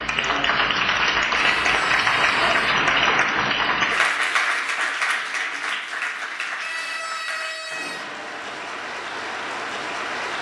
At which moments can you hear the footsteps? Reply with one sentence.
You can't hear the footsteps here.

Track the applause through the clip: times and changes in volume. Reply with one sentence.
The applause can be heard from 0.0 to 10.3 s, getting quieter.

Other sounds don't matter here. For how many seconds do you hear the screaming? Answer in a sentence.
The screaming can be heard for 3 seconds in total.